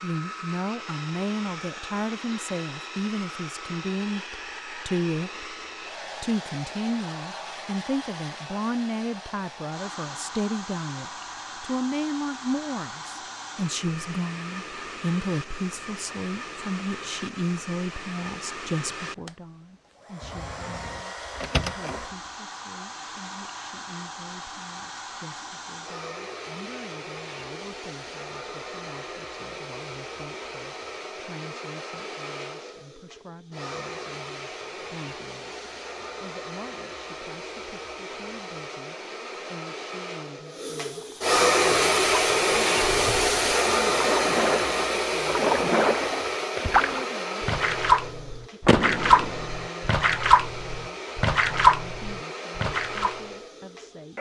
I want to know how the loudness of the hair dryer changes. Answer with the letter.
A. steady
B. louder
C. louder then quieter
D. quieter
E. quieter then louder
B.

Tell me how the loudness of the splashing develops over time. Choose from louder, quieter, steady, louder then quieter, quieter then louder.
louder.